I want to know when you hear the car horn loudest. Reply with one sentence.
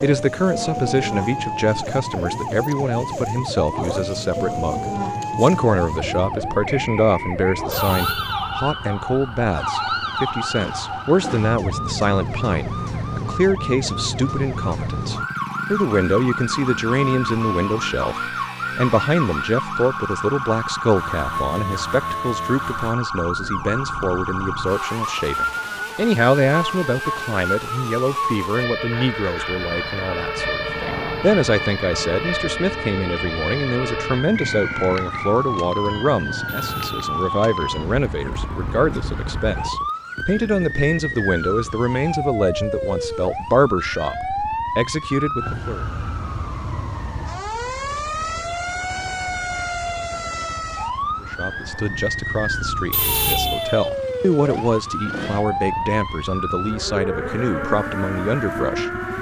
The volume of the car horn peaks at 53 seconds.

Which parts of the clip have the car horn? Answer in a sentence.
You can hear the car horn from 7.7 to 8.6 s, from 36.5 to 37.4 s and from 52.9 to 53.9 s.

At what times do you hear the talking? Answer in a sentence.
You can hear the talking from 0.0 to 45.9 s and from 51.2 to 59.0 s.